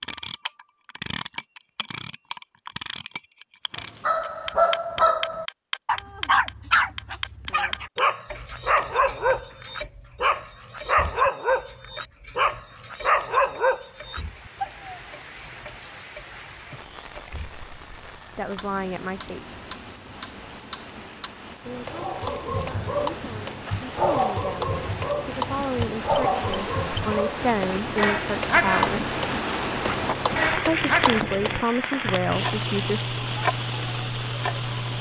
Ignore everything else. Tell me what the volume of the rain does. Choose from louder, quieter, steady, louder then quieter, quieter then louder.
louder.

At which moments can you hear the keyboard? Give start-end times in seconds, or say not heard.
not heard.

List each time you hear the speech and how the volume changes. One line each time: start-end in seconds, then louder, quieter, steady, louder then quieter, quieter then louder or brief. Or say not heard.
18.3-19.4 brief
21.6-29.1 louder
30.5-33.0 brief.